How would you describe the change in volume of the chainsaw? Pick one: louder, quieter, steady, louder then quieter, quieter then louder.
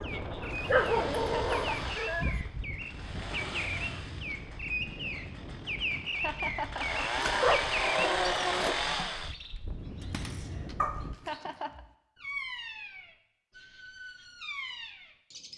quieter then louder.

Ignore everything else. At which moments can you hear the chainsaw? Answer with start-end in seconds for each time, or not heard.
0.0-9.3.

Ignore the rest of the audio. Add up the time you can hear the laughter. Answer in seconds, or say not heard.
2 s.